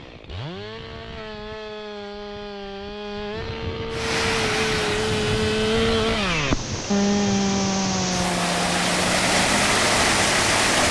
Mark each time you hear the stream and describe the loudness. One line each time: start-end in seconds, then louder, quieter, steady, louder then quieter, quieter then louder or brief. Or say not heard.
3.9-10.8 quieter then louder.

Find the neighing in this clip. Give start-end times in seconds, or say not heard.
not heard.